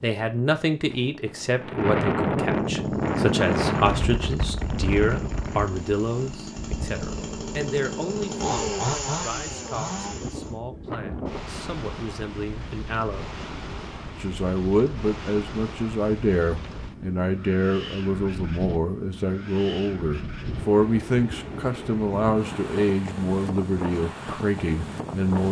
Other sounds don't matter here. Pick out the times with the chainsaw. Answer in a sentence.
The chainsaw can be heard from 2.7 to 10.6 s.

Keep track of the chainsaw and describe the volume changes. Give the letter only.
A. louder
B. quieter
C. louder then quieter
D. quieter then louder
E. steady
A.